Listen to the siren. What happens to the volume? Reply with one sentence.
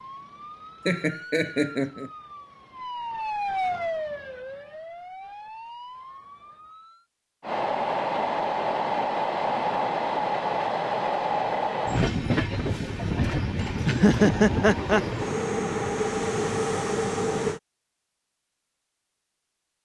The volume of the siren goes up, then down.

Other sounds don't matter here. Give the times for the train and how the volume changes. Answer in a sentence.
The train can be heard from 7.4 to 17.6 s, at a steady volume.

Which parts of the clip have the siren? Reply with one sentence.
The siren can be heard from 0.0 to 7.0 s.